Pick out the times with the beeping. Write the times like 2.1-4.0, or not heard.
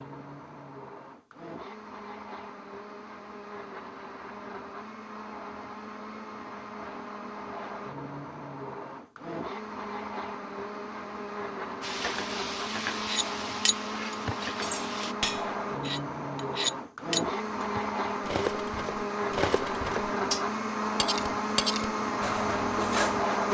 not heard.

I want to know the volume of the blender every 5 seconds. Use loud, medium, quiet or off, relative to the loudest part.
quiet, medium, medium, loud, loud.